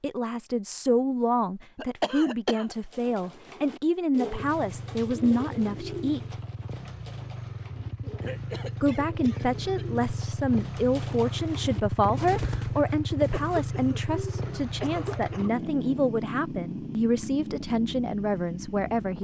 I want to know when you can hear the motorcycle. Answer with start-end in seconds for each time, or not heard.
4.3-19.1.